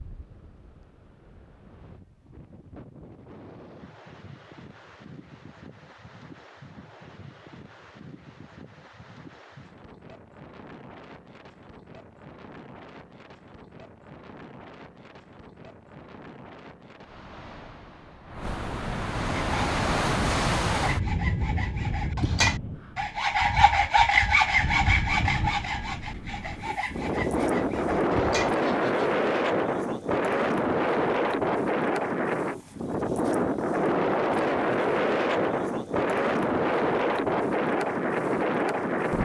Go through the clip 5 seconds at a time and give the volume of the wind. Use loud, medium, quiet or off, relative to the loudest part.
quiet, quiet, quiet, medium, medium, loud, loud, loud.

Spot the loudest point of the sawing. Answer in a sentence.
The loudest moment of the sawing is at 24 seconds.